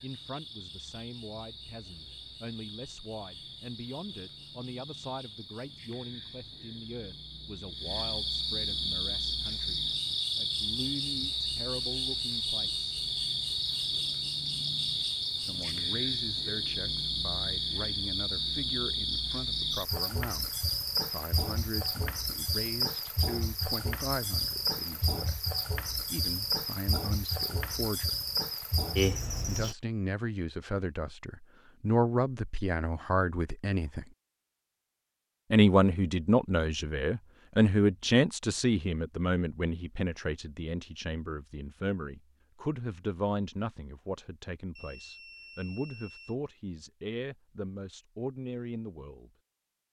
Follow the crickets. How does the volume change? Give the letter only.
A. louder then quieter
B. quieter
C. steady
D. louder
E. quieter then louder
D.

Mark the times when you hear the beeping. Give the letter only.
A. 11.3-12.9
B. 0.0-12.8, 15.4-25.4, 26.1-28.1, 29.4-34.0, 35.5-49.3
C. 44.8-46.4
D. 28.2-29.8
C.